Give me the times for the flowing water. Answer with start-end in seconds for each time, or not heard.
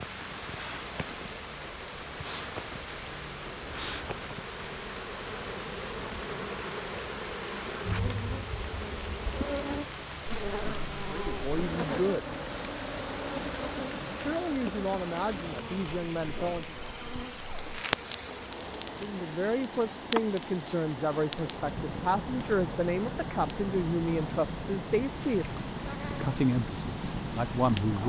0.0-28.0.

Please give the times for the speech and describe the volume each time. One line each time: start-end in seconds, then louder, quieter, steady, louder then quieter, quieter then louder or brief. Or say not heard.
11.1-12.3 brief
14.2-16.8 brief
19.0-25.4 steady
26.1-28.0 brief.